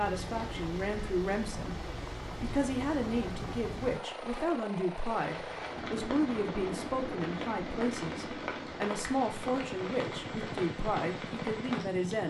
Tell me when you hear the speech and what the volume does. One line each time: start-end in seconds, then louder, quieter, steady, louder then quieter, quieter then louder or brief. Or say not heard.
0.0-12.2 steady.